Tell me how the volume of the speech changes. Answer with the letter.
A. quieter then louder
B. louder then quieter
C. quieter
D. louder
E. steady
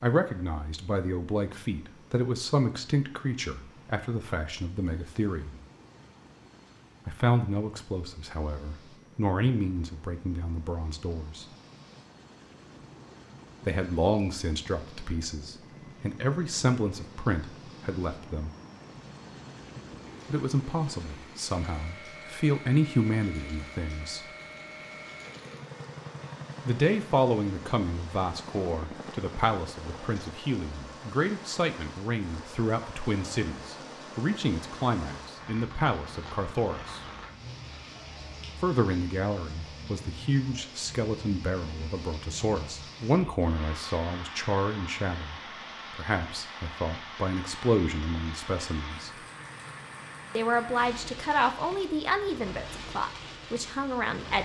E.